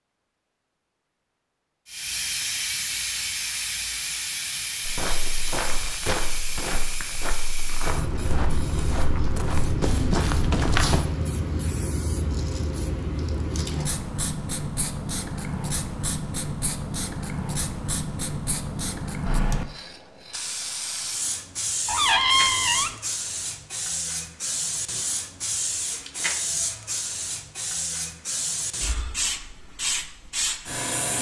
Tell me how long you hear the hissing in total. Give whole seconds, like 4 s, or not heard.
29 s.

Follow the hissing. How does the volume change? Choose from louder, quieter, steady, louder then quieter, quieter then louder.
steady.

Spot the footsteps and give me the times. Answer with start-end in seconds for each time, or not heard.
4.8-11.0.